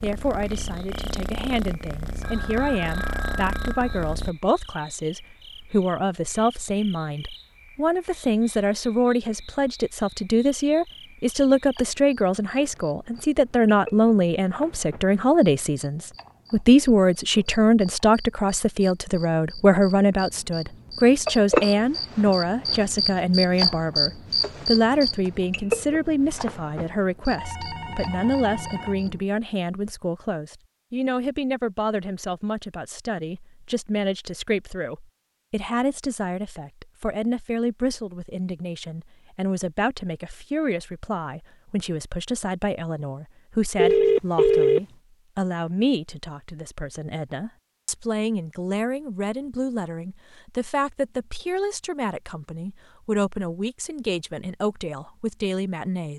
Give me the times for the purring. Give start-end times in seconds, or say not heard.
0.0-4.3.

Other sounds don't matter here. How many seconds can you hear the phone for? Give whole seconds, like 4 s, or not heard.
5 s.